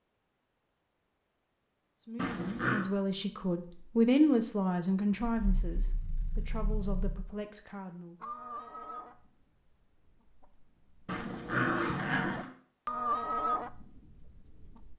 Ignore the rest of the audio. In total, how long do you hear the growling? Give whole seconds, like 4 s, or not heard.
4 s.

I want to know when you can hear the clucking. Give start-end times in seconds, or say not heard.
8.2-14.9.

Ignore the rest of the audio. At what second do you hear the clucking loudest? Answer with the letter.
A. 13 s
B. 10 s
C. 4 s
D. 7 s
A.